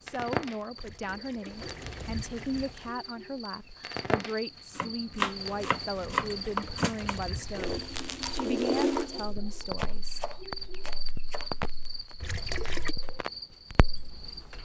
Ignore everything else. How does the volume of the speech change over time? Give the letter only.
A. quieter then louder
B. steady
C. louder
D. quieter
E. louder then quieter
B.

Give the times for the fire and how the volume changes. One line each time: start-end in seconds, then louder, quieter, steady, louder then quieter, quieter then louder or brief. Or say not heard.
0.1-14.5 louder then quieter.